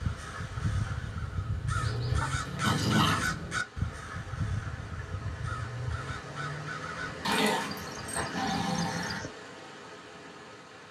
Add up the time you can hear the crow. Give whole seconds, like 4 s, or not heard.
9 s.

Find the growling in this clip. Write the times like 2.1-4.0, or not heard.
1.8-3.4, 7.2-9.2.